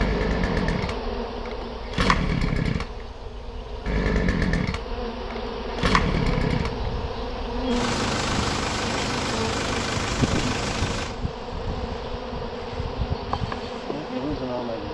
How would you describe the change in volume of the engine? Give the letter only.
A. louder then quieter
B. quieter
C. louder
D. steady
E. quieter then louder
B.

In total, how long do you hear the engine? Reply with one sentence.
The engine can be heard for 15 seconds in total.